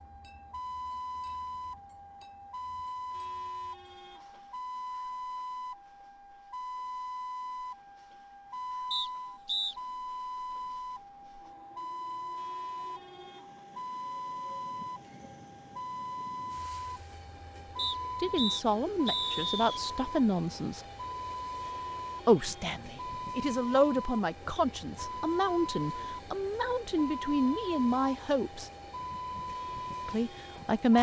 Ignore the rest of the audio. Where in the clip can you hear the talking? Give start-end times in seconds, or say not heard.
18.2-20.8, 22.2-28.7, 30.1-30.9.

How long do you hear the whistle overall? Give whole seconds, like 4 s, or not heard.
3 s.